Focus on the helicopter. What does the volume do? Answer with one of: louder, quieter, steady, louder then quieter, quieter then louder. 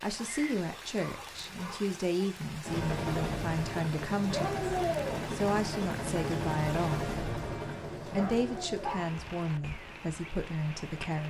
quieter.